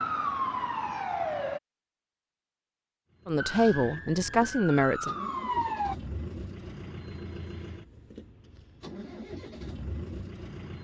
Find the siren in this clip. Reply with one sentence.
The siren can be heard from 0.0 to 1.6 s and from 3.4 to 6.0 s.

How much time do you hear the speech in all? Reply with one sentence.
You can hear the speech for 2 seconds altogether.